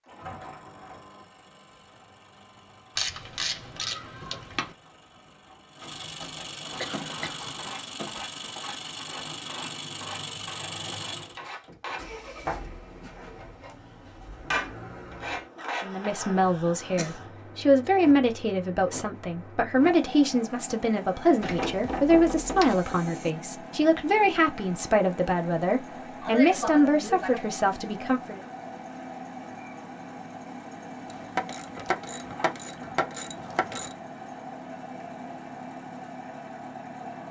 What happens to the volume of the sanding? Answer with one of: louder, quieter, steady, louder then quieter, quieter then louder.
louder.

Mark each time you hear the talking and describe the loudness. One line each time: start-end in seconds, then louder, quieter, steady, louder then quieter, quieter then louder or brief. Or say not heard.
15.8-28.4 steady.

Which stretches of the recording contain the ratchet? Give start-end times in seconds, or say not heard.
3.0-4.8, 21.4-23.3, 31.1-34.0.